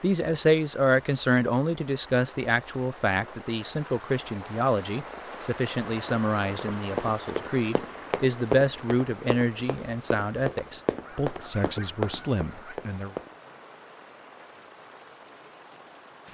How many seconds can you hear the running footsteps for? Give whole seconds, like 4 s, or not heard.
7 s.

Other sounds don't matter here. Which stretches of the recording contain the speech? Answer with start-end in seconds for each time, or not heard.
0.0-13.1.